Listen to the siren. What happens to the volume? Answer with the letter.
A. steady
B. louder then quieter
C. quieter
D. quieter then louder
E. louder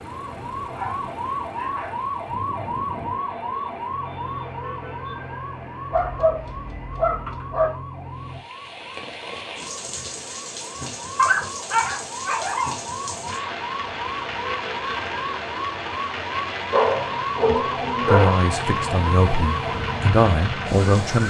D.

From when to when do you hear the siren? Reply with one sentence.
The siren can be heard from 0.1 to 21.2 s.